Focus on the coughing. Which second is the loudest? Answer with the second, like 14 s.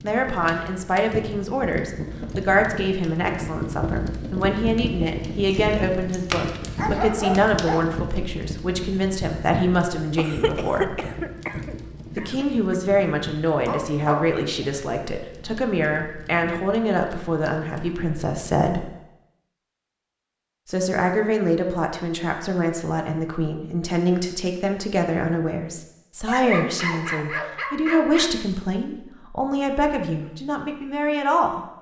11 s.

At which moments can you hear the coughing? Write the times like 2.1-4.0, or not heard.
10.2-12.8.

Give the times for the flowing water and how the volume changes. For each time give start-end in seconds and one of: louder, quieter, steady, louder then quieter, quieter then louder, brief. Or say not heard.
not heard.